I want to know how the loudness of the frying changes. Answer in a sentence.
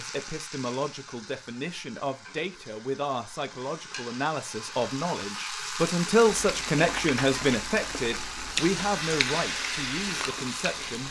The volume of the frying goes up.